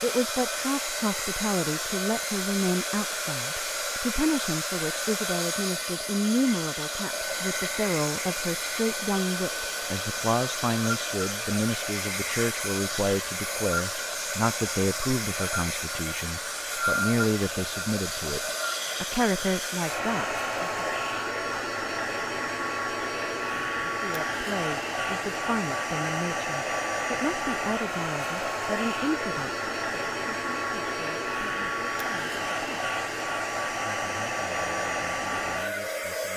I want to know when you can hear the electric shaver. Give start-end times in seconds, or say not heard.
not heard.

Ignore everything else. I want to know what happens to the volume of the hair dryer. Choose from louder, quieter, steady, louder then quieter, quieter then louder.
steady.